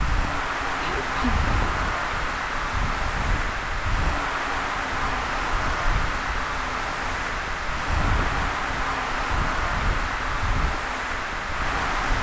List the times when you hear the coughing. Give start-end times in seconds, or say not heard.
0.8-1.4.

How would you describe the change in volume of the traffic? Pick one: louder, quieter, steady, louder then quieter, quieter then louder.
steady.